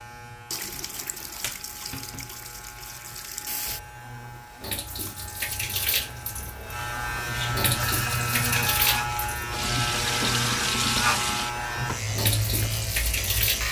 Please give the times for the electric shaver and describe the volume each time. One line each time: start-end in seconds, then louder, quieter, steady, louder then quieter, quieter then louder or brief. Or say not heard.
0.0-13.6 louder.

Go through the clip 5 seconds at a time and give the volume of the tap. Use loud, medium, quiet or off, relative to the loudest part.
medium, loud, loud.